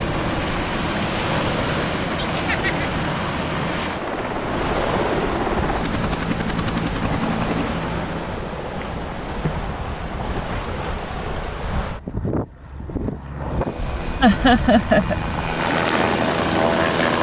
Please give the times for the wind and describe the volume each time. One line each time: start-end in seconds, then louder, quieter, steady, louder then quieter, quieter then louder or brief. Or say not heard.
0.0-17.1 steady.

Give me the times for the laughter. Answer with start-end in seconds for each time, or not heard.
2.3-2.9, 14.2-15.2.